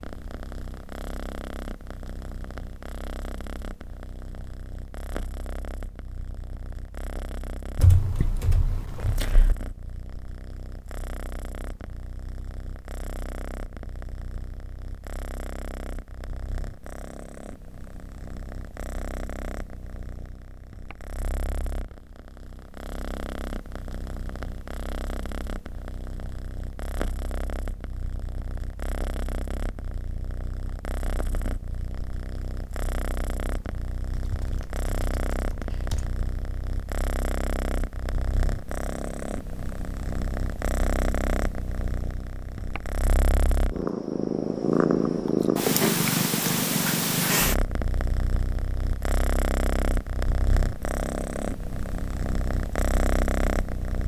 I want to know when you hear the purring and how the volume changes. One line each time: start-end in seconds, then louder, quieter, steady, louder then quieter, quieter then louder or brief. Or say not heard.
0.0-54.0 louder.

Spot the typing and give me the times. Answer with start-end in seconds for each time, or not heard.
7.8-9.6, 34.2-36.1.